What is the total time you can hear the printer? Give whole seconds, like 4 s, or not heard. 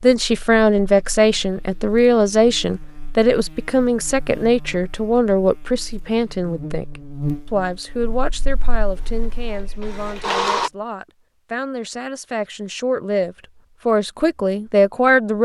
2 s.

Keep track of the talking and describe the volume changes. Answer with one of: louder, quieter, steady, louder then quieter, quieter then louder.
quieter then louder.